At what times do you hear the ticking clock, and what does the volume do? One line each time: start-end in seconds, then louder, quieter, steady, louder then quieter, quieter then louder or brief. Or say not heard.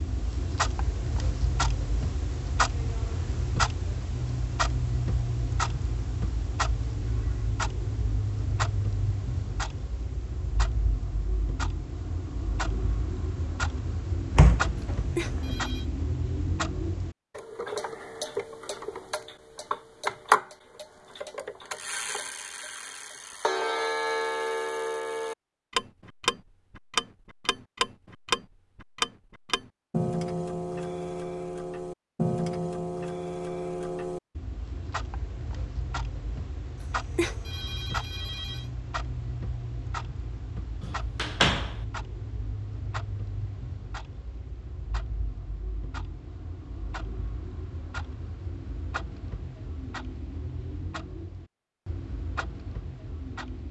0.0-53.6 quieter.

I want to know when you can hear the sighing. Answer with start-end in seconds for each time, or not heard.
not heard.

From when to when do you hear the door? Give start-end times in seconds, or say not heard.
14.3-15.7, 40.8-41.7.